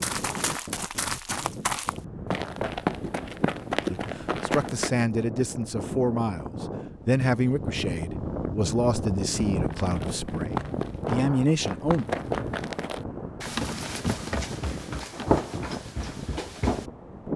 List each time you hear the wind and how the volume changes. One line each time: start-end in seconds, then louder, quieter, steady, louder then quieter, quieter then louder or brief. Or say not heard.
0.0-17.3 louder then quieter.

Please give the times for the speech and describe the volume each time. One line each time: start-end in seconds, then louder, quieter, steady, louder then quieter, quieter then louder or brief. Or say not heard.
3.9-12.1 steady.